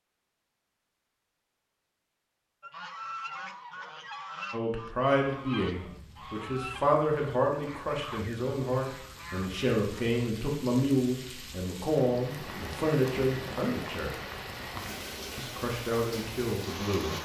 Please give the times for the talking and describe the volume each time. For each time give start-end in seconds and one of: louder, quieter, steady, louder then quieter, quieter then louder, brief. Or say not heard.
4.5-14.2 steady
15.3-17.2 brief.